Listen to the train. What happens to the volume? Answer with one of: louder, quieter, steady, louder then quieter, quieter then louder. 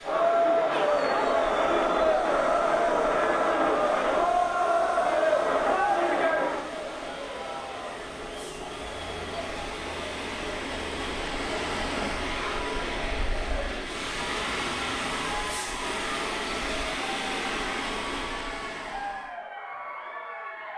louder.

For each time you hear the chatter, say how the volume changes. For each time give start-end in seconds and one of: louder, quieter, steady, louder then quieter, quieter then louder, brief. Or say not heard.
0.0-20.7 quieter.